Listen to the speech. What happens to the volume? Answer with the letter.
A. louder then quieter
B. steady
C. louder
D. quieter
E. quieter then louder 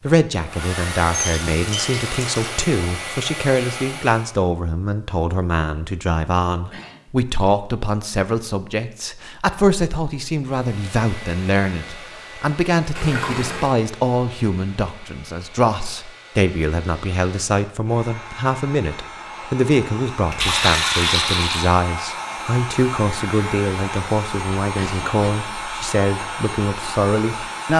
B.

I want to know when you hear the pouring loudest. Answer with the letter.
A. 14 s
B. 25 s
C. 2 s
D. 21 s
D.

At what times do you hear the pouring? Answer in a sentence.
The pouring can be heard from 1.1 to 2.5 s, from 12.9 to 13.8 s and from 20.4 to 21.7 s.